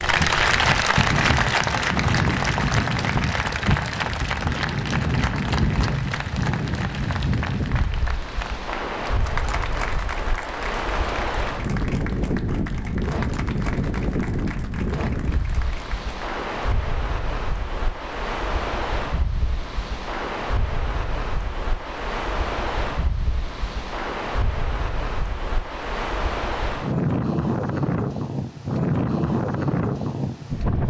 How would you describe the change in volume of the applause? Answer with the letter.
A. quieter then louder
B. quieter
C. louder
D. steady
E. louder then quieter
B.